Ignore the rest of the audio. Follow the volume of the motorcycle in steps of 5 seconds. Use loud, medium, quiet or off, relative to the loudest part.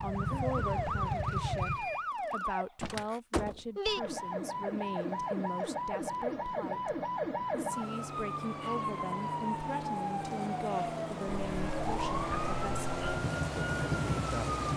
loud, off, loud.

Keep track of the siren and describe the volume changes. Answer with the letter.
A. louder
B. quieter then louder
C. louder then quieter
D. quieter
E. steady
E.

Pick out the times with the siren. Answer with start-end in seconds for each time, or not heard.
0.0-14.7.